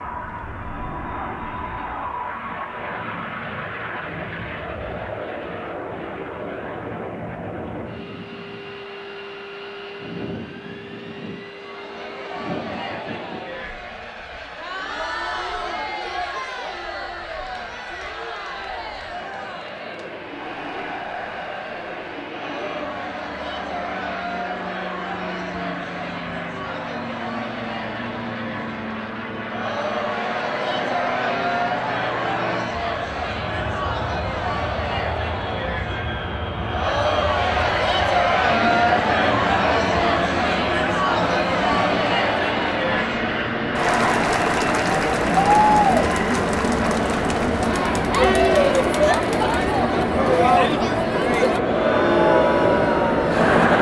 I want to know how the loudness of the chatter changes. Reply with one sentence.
The volume of the chatter goes up.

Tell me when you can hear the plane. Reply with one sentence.
You can hear the plane from 0.0 to 53.7 s.